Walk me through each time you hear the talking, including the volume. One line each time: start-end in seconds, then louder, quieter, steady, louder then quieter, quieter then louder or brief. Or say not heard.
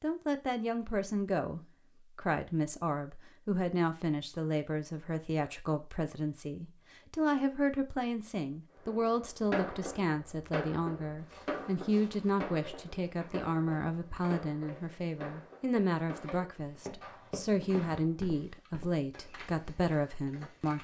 0.0-20.8 steady.